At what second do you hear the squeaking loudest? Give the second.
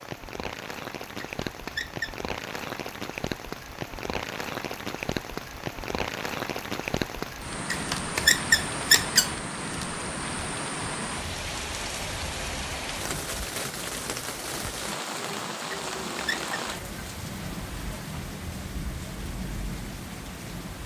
9 s.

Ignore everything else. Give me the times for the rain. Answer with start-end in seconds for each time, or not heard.
0.0-20.8.